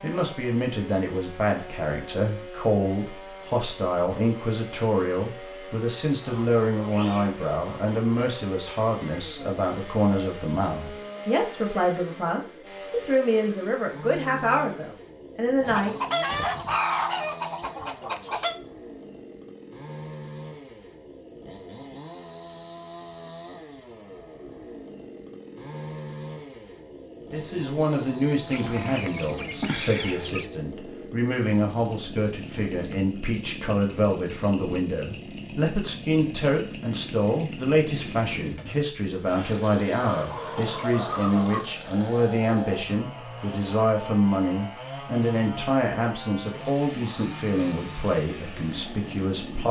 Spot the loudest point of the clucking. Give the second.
17 s.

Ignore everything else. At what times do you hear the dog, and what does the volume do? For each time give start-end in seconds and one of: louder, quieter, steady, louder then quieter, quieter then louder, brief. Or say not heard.
not heard.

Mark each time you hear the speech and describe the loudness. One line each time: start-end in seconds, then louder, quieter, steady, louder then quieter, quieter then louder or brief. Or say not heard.
0.0-15.9 steady
27.3-49.6 steady.